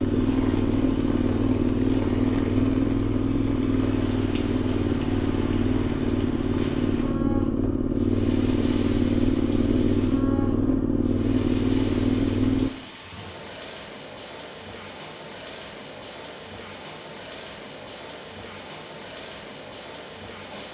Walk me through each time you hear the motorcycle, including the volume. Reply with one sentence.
You can hear the motorcycle from 0.0 to 12.7 s, at a steady volume.